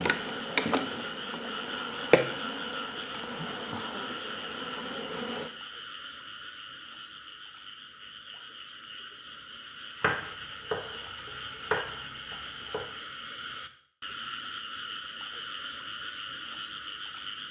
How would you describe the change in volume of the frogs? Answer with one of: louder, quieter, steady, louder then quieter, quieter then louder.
quieter then louder.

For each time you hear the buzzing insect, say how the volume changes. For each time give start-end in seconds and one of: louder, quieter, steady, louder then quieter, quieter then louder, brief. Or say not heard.
0.0-5.5 quieter.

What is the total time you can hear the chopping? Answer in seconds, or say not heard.
3 s.